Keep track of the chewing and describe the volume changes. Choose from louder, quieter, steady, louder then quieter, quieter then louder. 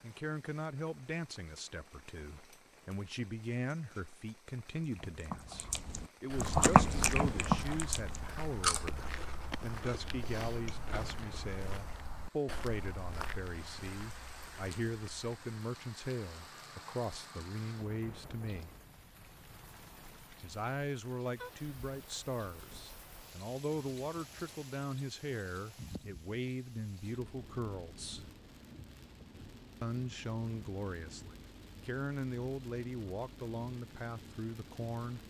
louder then quieter.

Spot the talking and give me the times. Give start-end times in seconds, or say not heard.
0.0-18.7, 20.4-28.2, 29.8-35.2.